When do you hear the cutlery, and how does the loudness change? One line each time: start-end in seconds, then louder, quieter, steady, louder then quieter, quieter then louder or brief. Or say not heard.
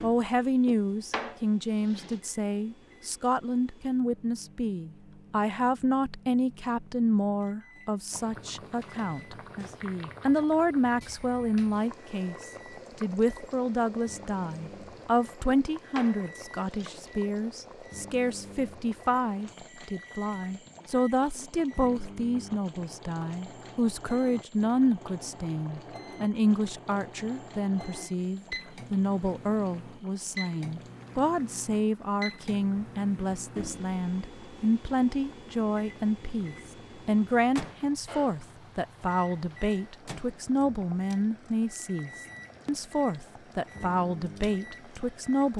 not heard.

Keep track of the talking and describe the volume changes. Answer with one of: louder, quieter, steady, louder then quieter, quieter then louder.
steady.